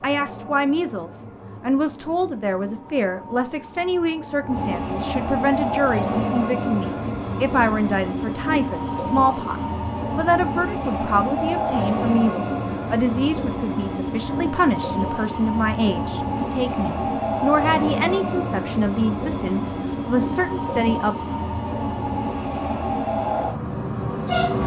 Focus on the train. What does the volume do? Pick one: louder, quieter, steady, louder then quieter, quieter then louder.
louder.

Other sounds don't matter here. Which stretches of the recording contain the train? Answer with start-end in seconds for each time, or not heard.
0.0-24.6.